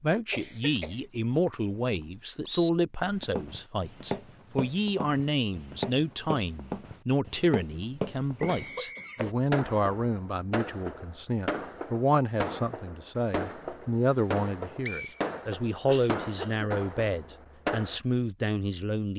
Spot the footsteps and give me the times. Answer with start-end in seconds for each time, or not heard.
3.1-9.3.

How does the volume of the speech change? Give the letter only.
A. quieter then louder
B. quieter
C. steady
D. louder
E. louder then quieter
C.